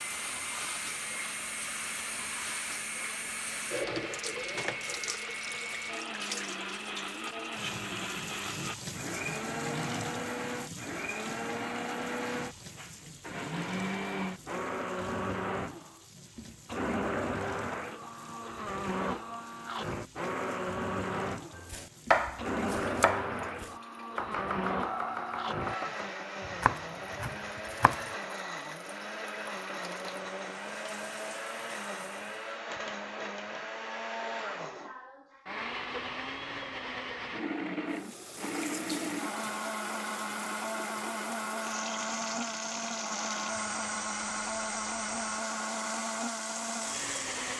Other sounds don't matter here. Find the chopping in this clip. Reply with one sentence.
You can hear the chopping from 21.6 to 28.1 s.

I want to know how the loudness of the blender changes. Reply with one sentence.
The volume of the blender stays about the same.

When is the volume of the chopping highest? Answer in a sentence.
The volume of the chopping peaks at 22 seconds.